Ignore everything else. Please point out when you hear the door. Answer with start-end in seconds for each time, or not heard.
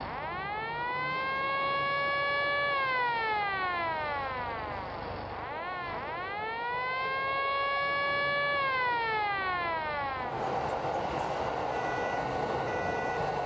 not heard.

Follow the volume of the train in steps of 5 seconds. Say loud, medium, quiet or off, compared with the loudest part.
medium, medium, loud.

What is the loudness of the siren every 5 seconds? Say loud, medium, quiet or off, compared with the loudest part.
loud, loud, medium.